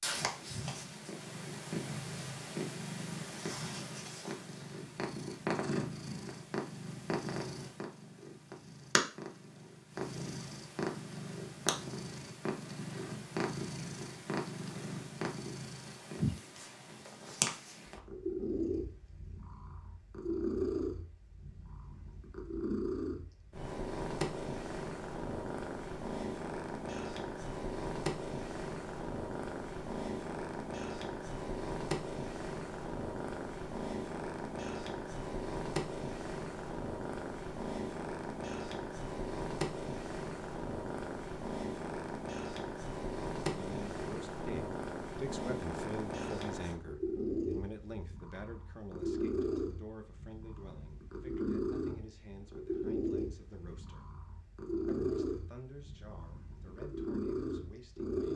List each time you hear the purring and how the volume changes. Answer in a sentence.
The purring can be heard from 0.0 to 58.3 s, at a steady volume.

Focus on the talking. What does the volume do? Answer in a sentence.
The volume of the talking goes down.